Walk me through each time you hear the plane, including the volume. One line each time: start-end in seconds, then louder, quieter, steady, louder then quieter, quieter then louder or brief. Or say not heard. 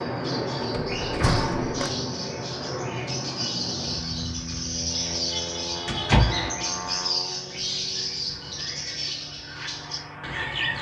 0.0-10.7 quieter.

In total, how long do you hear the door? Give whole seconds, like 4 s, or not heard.
2 s.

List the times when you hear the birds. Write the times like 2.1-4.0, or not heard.
0.0-10.7.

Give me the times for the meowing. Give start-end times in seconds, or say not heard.
not heard.